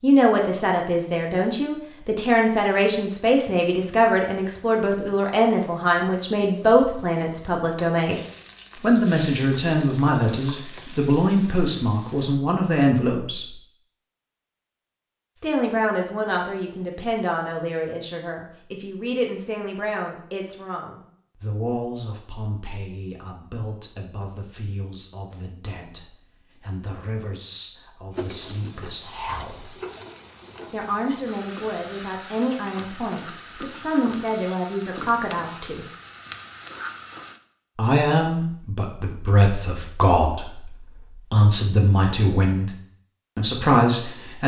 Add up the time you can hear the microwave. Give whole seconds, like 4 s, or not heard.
not heard.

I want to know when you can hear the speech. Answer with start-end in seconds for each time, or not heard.
0.0-13.6, 15.3-29.7, 30.7-35.9, 37.8-42.7, 43.4-44.4.